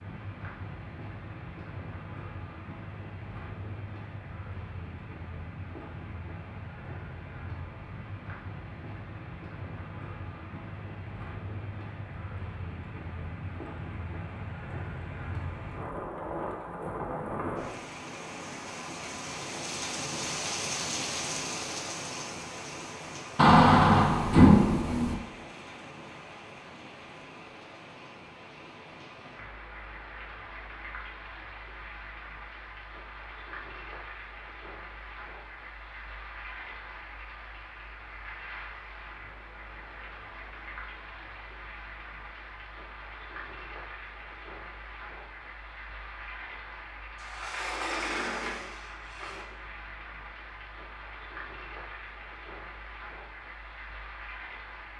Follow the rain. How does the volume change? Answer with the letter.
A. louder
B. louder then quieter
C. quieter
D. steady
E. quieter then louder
B.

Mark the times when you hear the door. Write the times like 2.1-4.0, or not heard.
23.4-25.1, 47.1-49.5.